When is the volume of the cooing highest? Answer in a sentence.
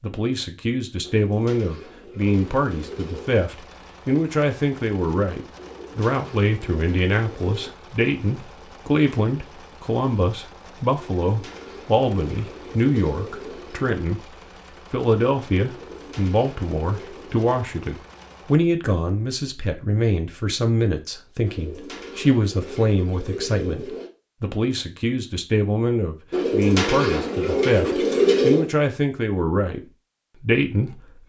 The volume of the cooing peaks at 28 seconds.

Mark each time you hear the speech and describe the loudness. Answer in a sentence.
The speech can be heard from 0.0 to 14.2 s, at a steady volume; from 14.9 to 29.8 s, at a steady volume; and briefly from 30.4 to 31.2 s.